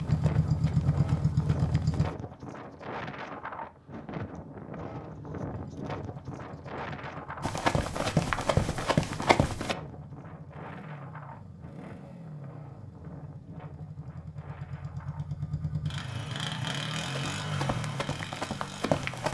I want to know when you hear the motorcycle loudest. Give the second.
1 s.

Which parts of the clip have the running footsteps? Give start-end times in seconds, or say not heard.
0.0-2.1, 7.4-9.8, 17.1-19.3.